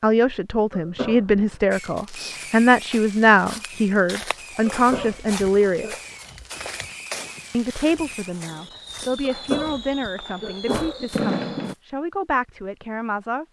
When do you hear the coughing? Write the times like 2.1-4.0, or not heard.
0.7-1.6, 4.7-6.0, 9.2-11.1.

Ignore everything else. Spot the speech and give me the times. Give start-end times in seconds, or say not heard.
0.0-6.0, 7.5-13.4.